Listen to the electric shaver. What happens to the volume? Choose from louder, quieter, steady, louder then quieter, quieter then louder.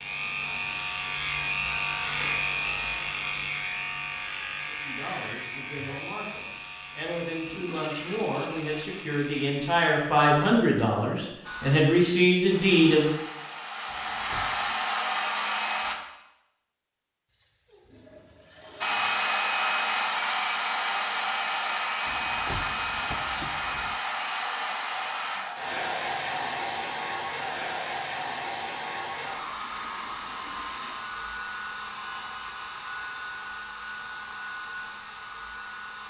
quieter.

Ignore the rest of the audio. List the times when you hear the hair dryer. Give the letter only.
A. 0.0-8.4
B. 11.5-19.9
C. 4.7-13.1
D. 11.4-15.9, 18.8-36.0
D.